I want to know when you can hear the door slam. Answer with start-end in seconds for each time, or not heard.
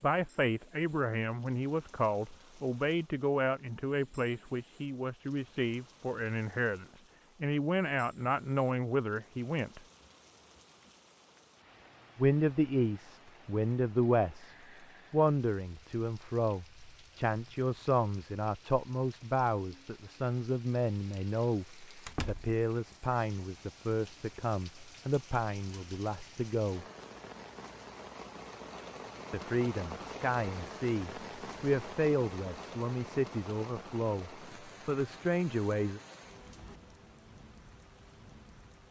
22.1-22.6.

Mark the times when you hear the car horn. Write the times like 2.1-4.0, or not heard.
not heard.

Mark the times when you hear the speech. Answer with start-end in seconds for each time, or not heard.
0.0-9.8, 12.2-26.9, 29.3-36.0.